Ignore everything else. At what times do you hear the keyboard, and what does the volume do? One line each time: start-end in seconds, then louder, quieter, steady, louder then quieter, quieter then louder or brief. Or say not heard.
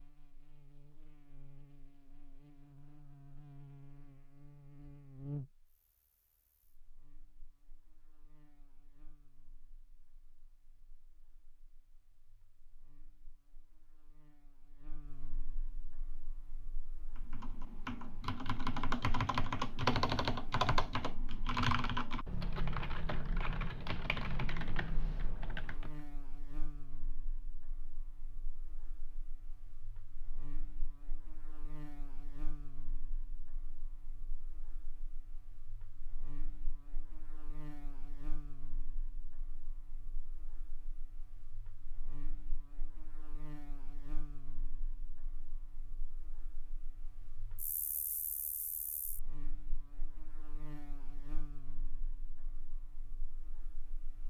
17.1-25.9 louder then quieter.